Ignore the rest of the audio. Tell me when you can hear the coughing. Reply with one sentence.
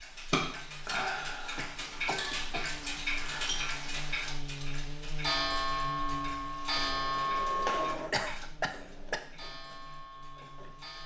You can hear the coughing from 1.6 to 2.9 s and from 8.1 to 9.2 s.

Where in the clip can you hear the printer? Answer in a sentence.
The printer can be heard from 6.7 to 11.0 s.